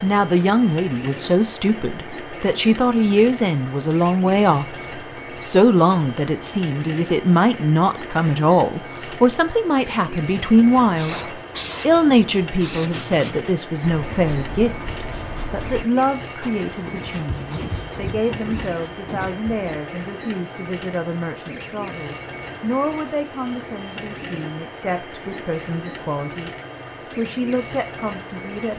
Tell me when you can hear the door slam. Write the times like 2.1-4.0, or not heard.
11.1-11.5.